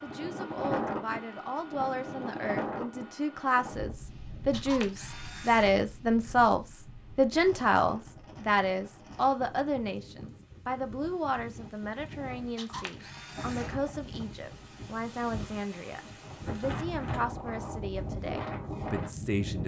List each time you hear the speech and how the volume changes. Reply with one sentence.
The speech can be heard from 0.0 to 19.6 s, getting louder then quieter.